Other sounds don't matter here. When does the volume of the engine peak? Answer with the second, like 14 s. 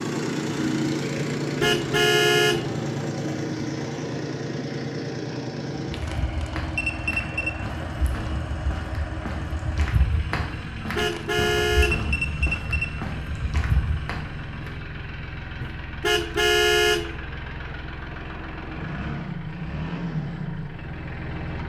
1 s.